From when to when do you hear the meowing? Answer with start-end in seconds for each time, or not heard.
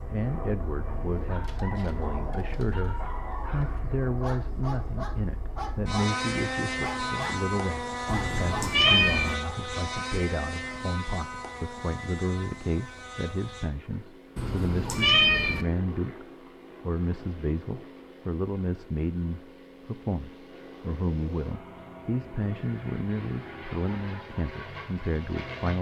8.1-9.3, 14.3-15.7.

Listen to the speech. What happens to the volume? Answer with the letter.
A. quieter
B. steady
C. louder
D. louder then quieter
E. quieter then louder
B.